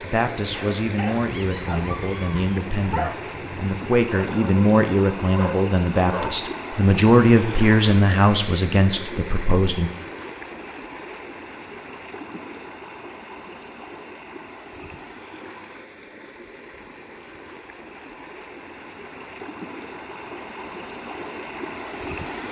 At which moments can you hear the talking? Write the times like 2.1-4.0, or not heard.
0.0-9.9.